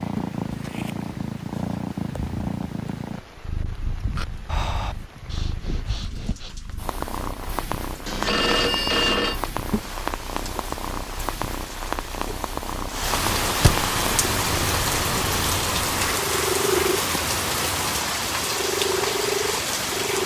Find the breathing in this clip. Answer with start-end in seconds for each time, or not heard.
4.2-6.5.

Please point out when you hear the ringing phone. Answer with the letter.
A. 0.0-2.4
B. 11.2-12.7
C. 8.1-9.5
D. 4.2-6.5
C.